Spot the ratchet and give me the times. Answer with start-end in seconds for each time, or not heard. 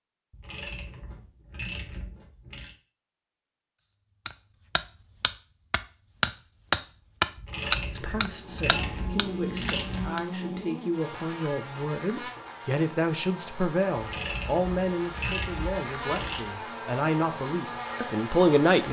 0.3-2.7, 7.3-10.1, 13.9-16.4.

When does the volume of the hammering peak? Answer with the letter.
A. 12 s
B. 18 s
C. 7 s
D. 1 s
C.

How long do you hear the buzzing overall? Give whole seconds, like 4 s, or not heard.
11 s.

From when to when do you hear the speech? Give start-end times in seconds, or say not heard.
7.9-18.8.